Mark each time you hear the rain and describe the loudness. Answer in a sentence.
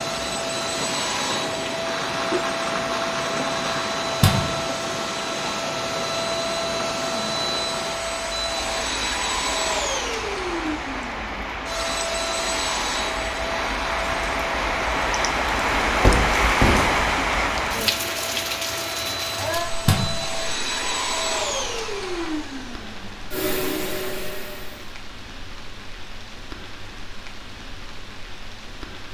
The rain can be heard from 0.0 to 29.0 s, getting louder then quieter.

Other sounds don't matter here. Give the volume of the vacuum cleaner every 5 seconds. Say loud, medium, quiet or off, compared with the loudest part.
loud, loud, loud, medium, loud, off.